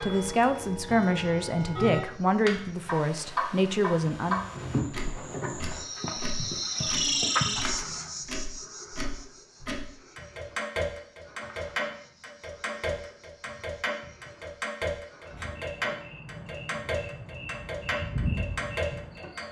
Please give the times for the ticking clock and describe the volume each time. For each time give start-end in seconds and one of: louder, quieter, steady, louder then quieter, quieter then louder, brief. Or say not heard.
0.0-19.4 steady.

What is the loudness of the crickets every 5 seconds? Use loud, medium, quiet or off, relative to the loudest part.
medium, loud, quiet, medium.